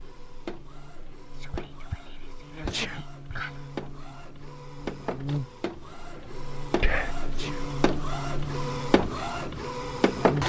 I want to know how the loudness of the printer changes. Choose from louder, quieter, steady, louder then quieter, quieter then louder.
louder.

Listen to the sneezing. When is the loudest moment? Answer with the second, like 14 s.
3 s.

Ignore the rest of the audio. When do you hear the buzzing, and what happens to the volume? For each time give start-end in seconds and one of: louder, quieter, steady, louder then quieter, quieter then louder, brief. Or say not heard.
0.0-10.4 louder.